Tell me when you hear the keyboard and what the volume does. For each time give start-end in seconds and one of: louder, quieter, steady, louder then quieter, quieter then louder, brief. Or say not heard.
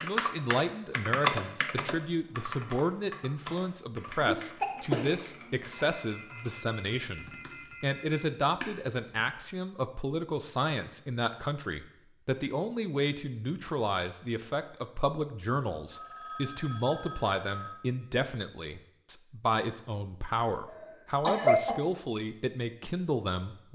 0.0-9.3 quieter then louder.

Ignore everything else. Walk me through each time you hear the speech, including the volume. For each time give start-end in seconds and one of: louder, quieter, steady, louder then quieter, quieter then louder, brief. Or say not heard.
0.0-23.7 steady.